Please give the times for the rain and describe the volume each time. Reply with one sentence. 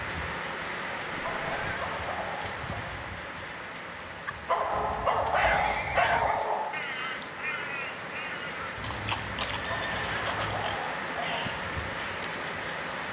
The rain can be heard from 0.0 to 13.0 s, getting quieter then louder.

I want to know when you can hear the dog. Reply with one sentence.
You can hear the dog from 1.2 to 2.9 s, from 4.5 to 6.8 s and from 9.7 to 11.5 s.